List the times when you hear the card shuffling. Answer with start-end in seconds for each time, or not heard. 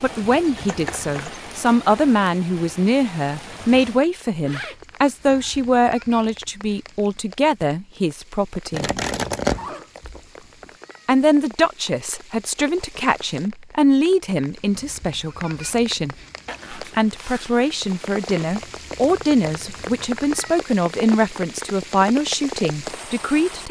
0.6-1.3, 8.7-9.7, 18.4-20.6.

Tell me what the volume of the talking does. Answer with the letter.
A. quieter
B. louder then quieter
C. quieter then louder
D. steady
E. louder
D.